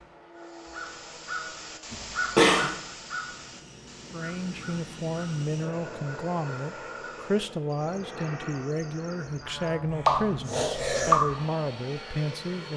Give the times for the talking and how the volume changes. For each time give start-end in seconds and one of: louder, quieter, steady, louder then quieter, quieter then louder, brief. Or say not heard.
4.1-12.7 steady.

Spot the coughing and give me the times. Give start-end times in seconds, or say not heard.
1.9-2.7, 10.1-11.2.